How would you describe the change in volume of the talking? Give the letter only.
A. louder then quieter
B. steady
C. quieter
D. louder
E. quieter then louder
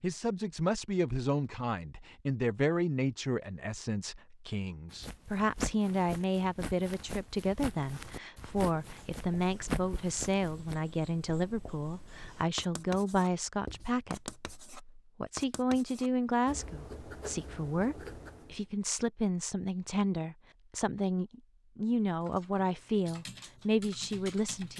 B.